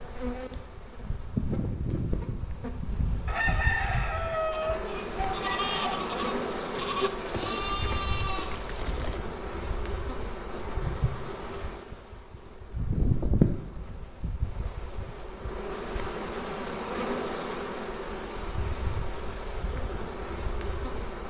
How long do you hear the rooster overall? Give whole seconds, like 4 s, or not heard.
3 s.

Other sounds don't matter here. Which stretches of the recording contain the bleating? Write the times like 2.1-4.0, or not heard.
2.9-9.2.